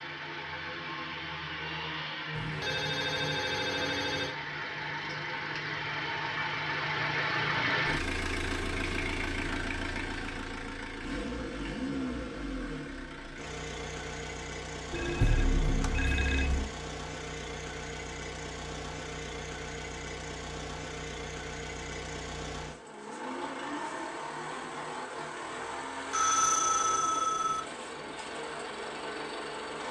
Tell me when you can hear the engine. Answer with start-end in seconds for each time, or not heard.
0.0-29.8.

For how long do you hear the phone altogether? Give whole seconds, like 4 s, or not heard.
5 s.